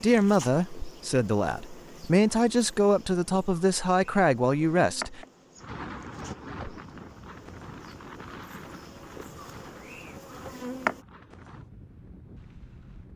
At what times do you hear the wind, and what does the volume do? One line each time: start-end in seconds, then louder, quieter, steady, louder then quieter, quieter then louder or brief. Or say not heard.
5.5-13.1 quieter.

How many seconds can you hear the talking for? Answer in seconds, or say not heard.
5 s.